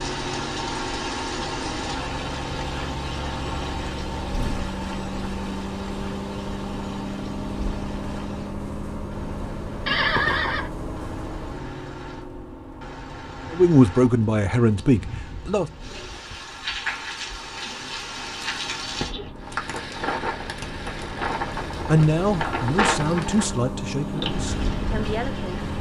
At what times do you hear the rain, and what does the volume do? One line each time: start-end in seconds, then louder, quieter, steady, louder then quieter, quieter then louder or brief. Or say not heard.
0.0-25.7 quieter then louder.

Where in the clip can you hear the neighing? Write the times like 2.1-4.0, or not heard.
9.8-10.7.